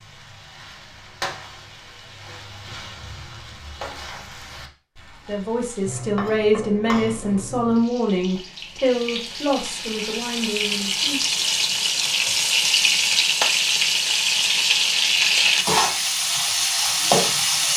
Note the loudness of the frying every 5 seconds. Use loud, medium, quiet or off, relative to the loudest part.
quiet, quiet, loud, loud.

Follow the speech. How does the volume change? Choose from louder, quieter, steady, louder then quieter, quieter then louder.
quieter.